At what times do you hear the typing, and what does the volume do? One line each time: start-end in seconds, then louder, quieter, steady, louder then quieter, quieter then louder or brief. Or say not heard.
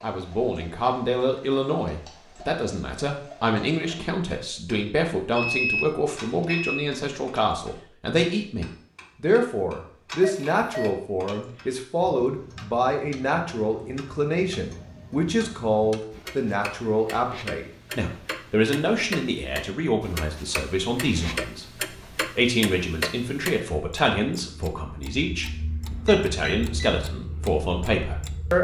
not heard.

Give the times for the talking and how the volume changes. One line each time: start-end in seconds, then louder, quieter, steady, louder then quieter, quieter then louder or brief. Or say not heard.
0.0-28.5 steady.